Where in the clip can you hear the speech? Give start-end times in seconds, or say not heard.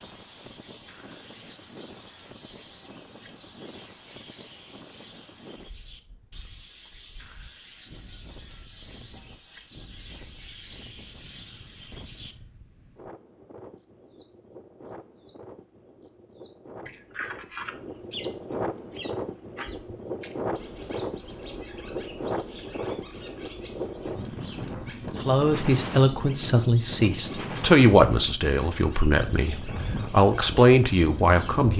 25.2-31.7.